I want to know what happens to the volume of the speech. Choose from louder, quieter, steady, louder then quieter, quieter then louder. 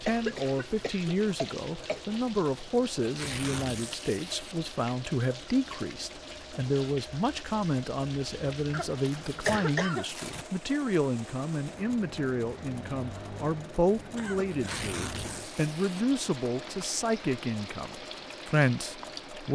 steady.